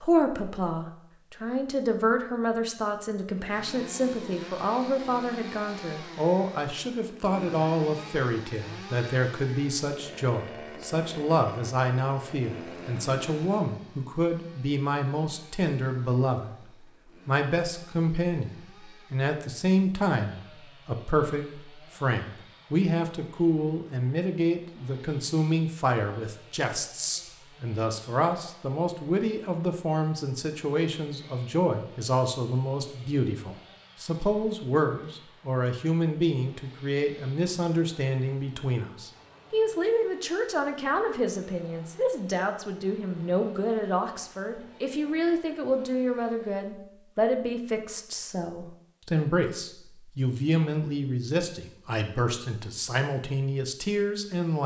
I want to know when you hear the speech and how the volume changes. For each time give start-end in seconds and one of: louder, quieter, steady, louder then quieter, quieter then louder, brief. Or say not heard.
0.0-54.6 steady.